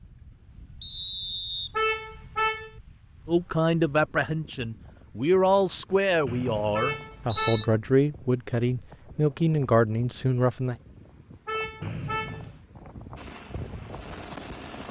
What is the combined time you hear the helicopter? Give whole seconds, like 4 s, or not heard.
2 s.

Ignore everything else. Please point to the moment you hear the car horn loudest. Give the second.
2 s.